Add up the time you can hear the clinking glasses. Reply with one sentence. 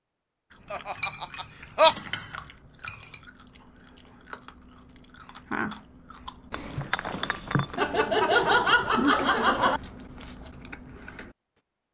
You can hear the clinking glasses for 4 seconds altogether.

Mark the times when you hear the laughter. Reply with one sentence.
You can hear the laughter from 0.7 to 1.9 s and from 7.8 to 9.8 s.